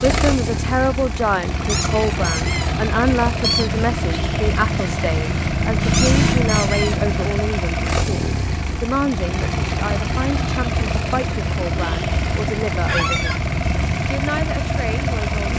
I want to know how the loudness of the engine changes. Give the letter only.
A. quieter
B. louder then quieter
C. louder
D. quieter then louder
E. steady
E.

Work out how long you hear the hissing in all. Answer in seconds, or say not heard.
4 s.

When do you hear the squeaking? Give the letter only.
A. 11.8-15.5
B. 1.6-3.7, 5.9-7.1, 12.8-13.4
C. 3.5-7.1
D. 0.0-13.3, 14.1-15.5
B.